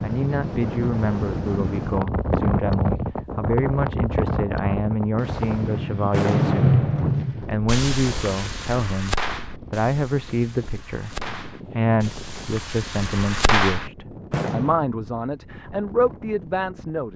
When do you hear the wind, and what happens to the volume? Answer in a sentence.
The wind can be heard from 0.0 to 17.1 s, getting quieter.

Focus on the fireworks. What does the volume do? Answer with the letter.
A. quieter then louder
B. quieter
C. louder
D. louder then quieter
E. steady
A.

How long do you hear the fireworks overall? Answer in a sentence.
The fireworks can be heard for 10 seconds in total.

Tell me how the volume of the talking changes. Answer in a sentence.
The loudness of the talking stays about the same.